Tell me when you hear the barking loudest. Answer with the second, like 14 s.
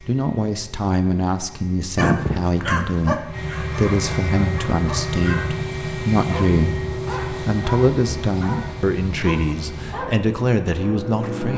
2 s.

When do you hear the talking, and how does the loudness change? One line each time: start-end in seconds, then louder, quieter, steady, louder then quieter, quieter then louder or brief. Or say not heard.
0.0-11.5 steady.